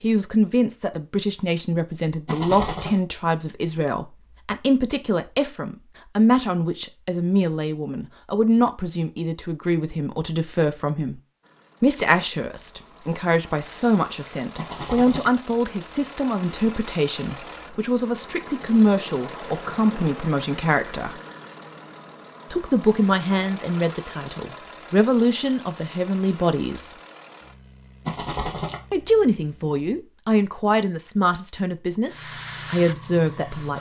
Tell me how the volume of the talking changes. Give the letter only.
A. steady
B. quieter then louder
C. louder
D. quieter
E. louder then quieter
A.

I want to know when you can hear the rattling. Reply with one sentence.
You can hear the rattling from 2.2 to 3.0 s, from 14.6 to 15.3 s and from 28.1 to 28.8 s.